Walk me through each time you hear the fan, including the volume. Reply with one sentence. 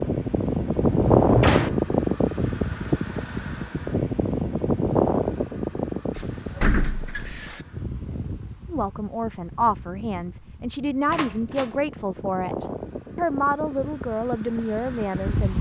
The fan can be heard from 0.0 to 15.5 s, getting quieter then louder.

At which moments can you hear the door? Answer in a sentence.
The door can be heard from 0.8 to 1.8 s, from 6.2 to 7.6 s and from 11.1 to 11.8 s.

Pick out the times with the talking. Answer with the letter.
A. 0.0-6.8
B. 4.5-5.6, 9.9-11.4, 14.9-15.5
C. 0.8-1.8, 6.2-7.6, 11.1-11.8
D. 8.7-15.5
D.